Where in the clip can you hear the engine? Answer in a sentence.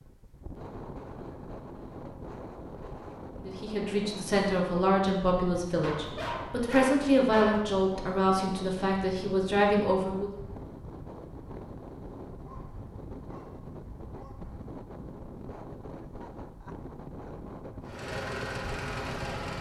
You can hear the engine from 17.8 to 19.5 s.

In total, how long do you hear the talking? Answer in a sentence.
The talking can be heard for 7 seconds in total.